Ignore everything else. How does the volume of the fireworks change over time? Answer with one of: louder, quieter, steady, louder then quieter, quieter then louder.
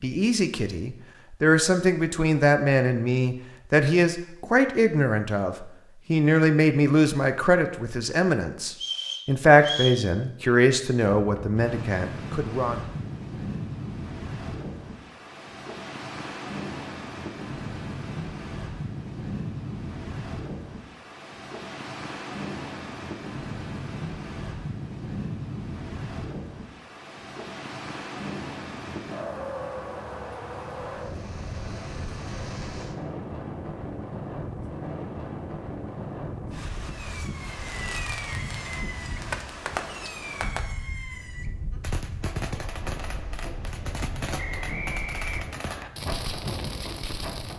steady.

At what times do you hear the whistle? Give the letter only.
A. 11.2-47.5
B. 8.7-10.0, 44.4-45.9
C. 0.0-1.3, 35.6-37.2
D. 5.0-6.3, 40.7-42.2
B.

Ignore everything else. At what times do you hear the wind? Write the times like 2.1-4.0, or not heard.
11.2-47.5.